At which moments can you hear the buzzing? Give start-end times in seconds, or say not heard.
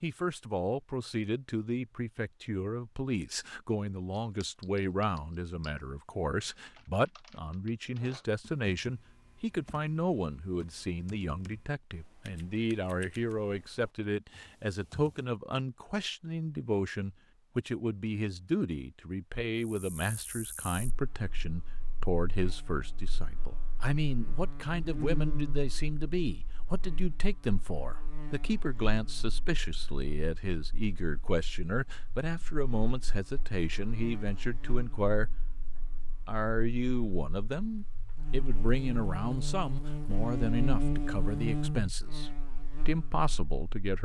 19.6-43.9.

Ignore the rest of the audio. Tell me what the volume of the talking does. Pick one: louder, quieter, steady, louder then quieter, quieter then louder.
steady.